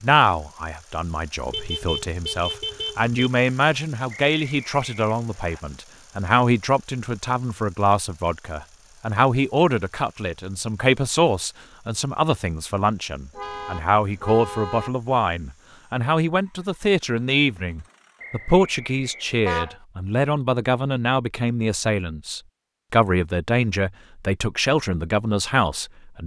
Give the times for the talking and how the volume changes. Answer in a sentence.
You can hear the talking from 0.0 to 26.2 s, at a steady volume.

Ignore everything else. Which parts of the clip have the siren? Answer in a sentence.
You can't hear the siren here.